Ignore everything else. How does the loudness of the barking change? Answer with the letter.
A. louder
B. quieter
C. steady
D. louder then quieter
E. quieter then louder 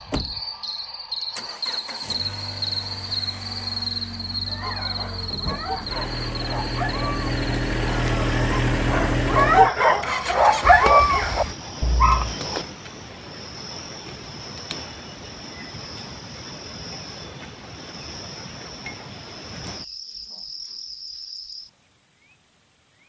A.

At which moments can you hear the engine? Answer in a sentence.
You can hear the engine from 0.0 to 11.6 s.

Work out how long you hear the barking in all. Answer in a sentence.
You can hear the barking for 8 seconds altogether.